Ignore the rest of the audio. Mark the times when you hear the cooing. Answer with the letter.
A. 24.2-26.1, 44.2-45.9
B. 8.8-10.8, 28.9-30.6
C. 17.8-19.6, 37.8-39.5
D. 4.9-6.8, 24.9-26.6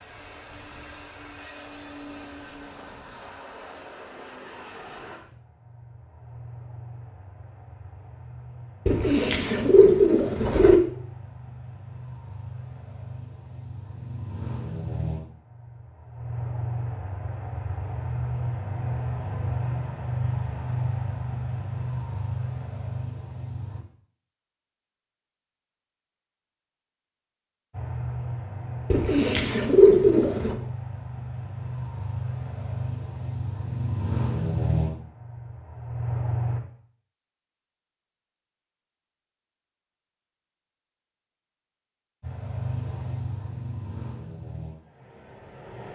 B.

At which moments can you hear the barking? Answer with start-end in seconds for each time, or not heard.
not heard.